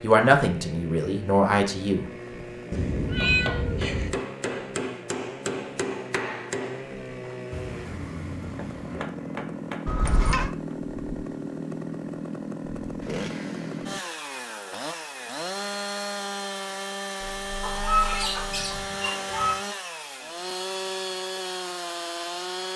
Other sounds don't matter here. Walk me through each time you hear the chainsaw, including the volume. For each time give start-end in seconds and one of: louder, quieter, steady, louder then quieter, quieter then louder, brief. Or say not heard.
0.0-22.7 louder.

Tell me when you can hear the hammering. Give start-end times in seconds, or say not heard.
3.1-10.8.